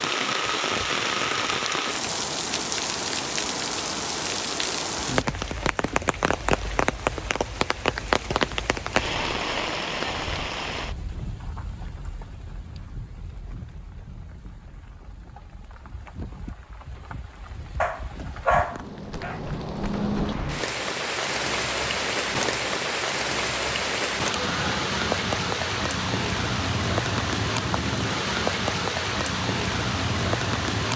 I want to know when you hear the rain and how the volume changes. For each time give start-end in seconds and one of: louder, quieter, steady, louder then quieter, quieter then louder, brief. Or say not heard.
0.0-30.9 quieter then louder.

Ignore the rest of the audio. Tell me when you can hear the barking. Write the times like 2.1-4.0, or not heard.
17.8-19.4.